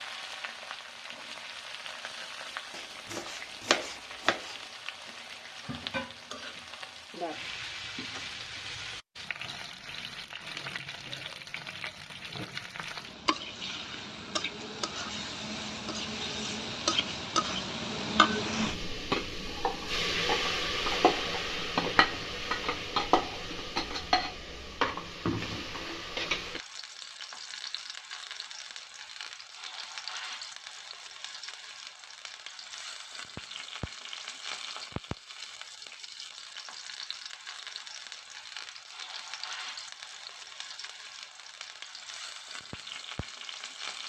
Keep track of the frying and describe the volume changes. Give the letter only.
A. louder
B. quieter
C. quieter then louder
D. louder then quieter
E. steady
D.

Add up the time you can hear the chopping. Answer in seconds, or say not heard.
2 s.